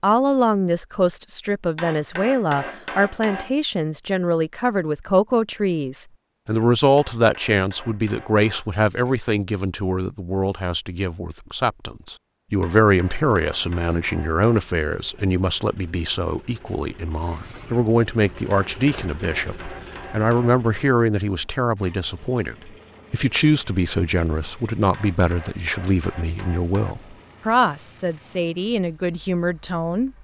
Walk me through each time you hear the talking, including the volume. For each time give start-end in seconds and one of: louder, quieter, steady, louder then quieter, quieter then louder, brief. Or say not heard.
0.0-30.1 steady.